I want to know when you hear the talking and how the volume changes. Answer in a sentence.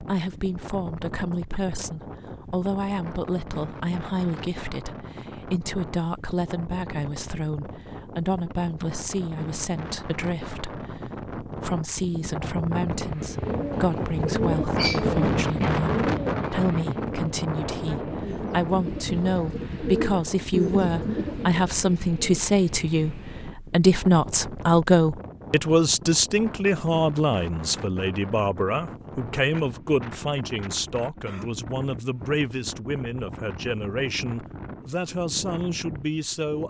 The talking can be heard from 0.0 to 36.6 s, getting louder then quieter.